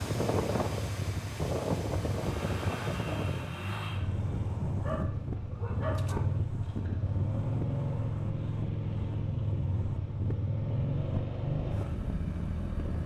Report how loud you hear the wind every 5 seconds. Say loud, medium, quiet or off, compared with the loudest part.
loud, medium, medium.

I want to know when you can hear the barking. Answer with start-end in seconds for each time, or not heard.
4.8-6.4.